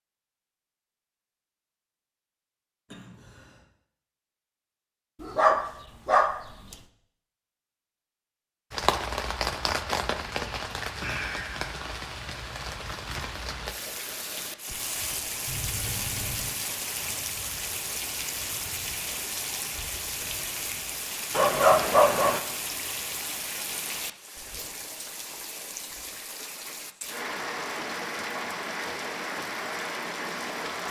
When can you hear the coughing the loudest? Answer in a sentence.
The volume of the coughing peaks at 16 seconds.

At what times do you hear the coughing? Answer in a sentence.
You can hear the coughing from 2.9 to 3.6 s and from 15.4 to 16.5 s.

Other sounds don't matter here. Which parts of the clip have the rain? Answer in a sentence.
The rain can be heard from 8.7 to 30.8 s.